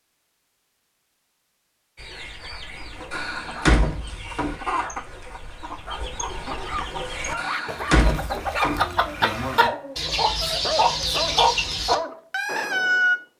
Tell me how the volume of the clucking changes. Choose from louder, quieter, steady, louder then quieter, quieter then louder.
louder.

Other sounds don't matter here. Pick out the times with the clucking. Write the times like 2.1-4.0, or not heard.
1.9-13.2.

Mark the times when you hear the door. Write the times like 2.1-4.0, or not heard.
3.1-4.5, 7.3-8.8.